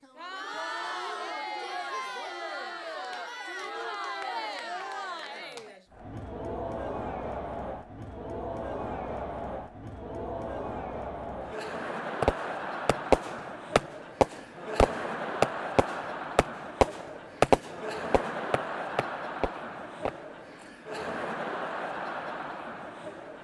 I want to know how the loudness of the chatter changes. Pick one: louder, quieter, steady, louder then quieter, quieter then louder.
steady.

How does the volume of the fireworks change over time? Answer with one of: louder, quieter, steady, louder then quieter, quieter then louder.
quieter.